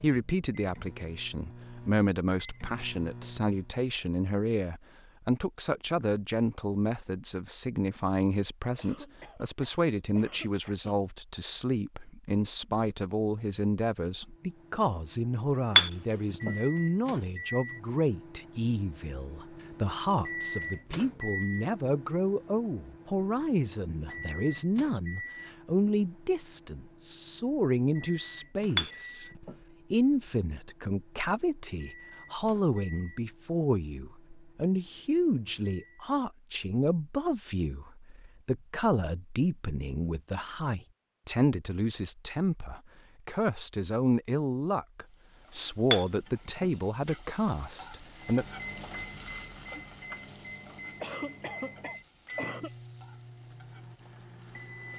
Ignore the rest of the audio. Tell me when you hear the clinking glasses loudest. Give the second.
16 s.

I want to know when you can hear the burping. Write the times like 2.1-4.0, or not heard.
not heard.